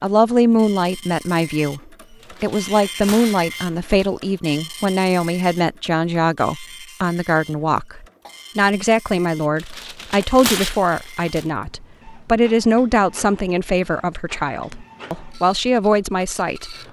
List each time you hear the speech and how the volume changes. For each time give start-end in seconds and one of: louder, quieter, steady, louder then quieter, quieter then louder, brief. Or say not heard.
0.0-1.8 brief
2.4-16.8 steady.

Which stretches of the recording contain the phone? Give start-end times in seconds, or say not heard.
not heard.